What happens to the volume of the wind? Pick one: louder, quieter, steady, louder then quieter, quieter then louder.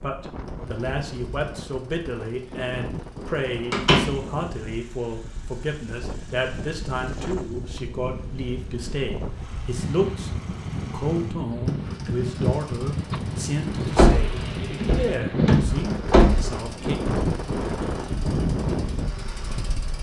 louder.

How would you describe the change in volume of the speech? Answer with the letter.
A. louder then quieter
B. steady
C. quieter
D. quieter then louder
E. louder
B.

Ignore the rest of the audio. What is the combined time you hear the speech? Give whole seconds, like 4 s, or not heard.
17 s.